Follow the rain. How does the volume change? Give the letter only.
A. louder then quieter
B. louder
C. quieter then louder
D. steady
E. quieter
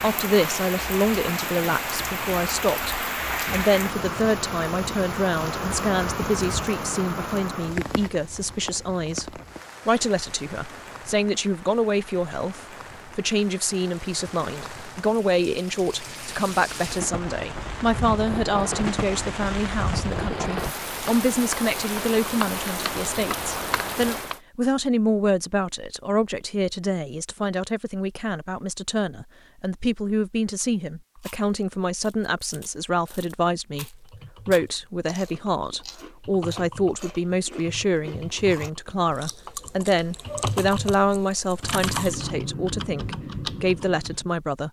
C.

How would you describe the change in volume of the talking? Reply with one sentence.
The volume of the talking stays about the same.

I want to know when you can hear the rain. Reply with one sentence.
The rain can be heard from 0.0 to 24.4 s.